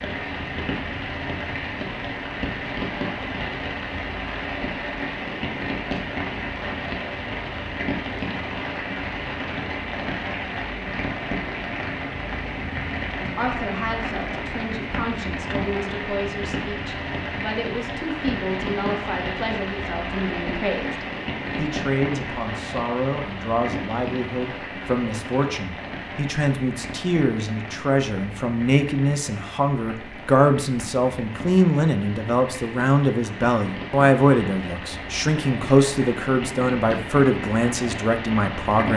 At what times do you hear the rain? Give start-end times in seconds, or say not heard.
0.0-38.9.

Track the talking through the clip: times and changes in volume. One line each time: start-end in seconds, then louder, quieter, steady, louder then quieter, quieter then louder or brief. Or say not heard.
13.3-38.9 louder.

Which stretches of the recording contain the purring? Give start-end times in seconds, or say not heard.
not heard.